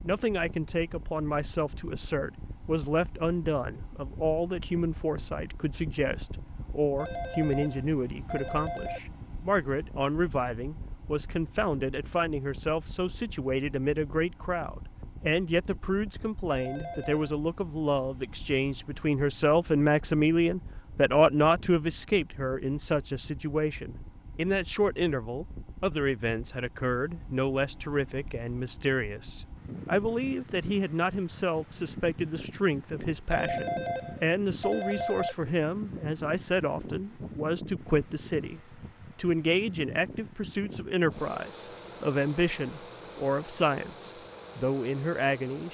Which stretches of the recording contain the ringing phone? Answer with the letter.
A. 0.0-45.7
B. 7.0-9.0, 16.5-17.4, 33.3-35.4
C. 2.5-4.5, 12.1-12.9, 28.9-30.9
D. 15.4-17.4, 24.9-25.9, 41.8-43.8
B.